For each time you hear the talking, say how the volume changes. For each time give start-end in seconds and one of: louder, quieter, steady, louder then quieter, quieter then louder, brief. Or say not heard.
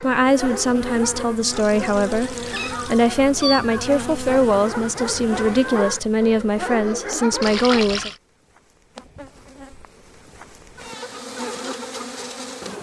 0.0-8.1 steady.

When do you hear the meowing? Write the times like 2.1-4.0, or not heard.
2.5-3.9.